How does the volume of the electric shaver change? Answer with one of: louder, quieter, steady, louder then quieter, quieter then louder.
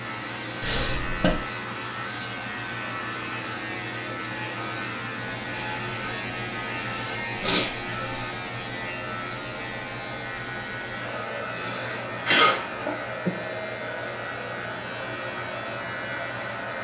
steady.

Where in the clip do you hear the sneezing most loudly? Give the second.
12 s.